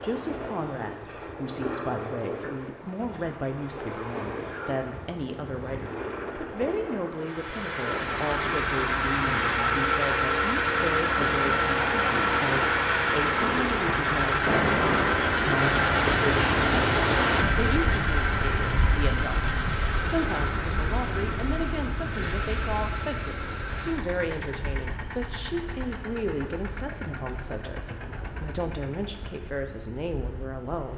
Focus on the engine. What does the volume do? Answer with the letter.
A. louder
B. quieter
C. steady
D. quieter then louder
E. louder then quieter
B.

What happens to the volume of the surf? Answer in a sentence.
The loudness of the surf goes up, then down.